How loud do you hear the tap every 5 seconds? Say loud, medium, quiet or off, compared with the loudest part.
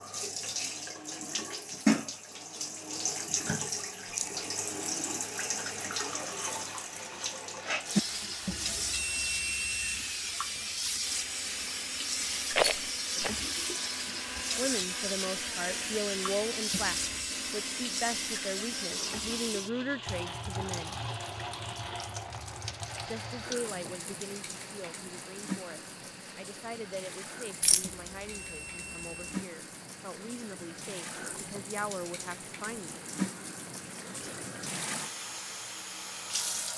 loud, loud, loud, loud, medium, medium, medium, medium.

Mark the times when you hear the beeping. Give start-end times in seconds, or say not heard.
8.4-10.1, 16.7-17.4, 27.8-29.2.